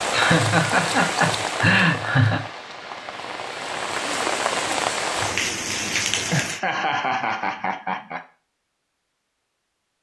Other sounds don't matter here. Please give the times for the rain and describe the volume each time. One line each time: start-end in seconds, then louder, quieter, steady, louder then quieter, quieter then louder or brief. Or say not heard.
0.0-6.6 quieter then louder.